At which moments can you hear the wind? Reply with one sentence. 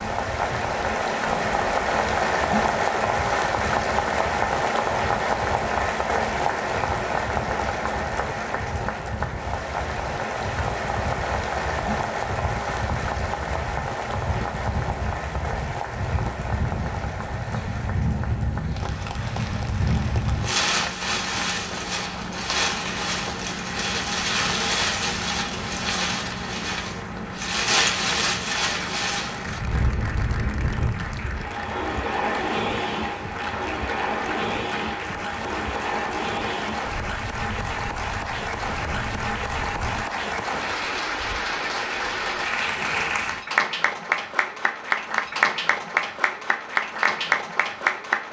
You can hear the wind from 0.0 to 40.0 s.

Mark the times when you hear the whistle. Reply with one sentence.
The whistle can't be heard in this clip.